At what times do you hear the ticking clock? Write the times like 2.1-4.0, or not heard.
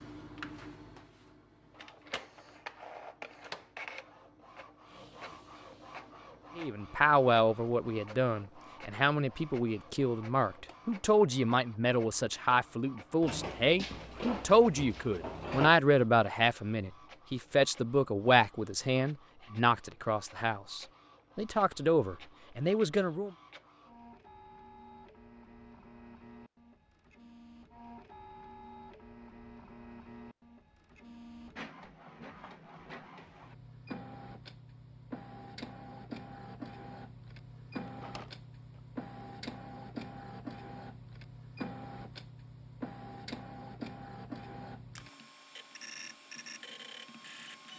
not heard.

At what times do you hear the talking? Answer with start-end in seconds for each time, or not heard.
6.5-23.3.